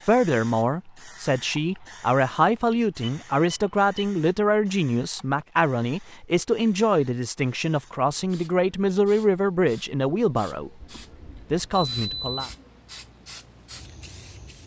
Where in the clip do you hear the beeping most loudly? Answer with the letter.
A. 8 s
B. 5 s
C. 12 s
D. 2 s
C.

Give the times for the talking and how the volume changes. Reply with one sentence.
The talking can be heard from 0.0 to 10.7 s, at a steady volume; and briefly from 11.5 to 12.5 s.